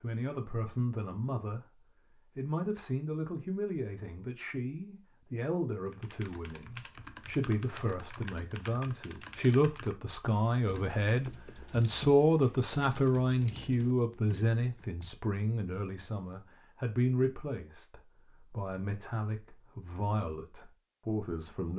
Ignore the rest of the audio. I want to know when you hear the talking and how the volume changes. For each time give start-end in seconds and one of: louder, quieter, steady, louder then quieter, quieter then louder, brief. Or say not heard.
0.0-1.6 brief
2.4-21.7 louder then quieter.